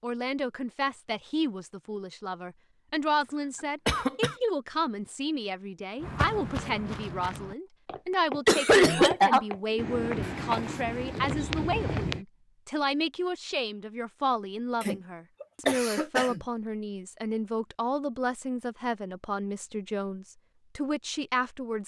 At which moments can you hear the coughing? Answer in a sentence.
The coughing can be heard from 3.9 to 4.3 s, from 8.4 to 10.3 s and from 14.8 to 16.4 s.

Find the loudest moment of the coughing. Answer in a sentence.
The volume of the coughing peaks at 9 seconds.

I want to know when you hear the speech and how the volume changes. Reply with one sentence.
The speech can be heard from 0.0 to 21.8 s, at a steady volume.